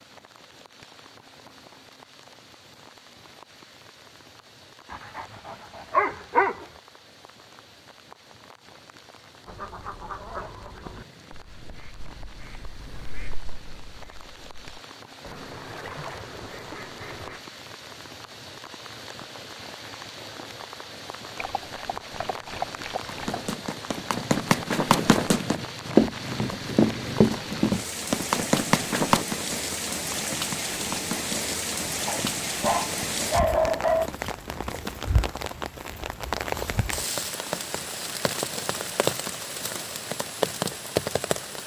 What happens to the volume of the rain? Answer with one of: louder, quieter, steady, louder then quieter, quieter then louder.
louder.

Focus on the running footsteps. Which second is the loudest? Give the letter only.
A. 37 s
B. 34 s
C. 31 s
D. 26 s
D.